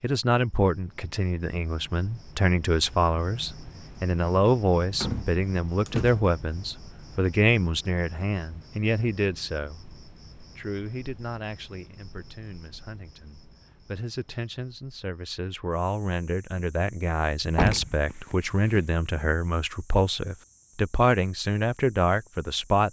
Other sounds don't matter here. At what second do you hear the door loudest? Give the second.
18 s.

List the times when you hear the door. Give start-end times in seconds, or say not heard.
5.0-6.3, 17.5-18.8.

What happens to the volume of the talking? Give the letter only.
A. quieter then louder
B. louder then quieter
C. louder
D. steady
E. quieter
A.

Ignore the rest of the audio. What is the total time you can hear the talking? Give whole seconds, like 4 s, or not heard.
23 s.